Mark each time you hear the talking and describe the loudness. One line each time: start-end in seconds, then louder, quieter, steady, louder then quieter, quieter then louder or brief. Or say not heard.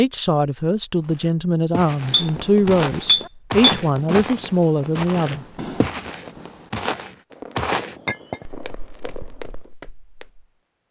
0.0-5.5 steady.